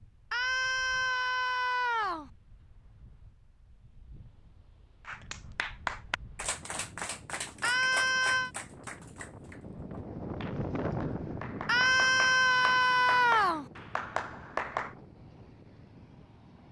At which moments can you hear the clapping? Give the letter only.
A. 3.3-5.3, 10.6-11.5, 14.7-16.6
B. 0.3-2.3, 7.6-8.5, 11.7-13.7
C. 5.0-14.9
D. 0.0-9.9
C.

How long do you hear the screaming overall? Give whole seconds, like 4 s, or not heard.
5 s.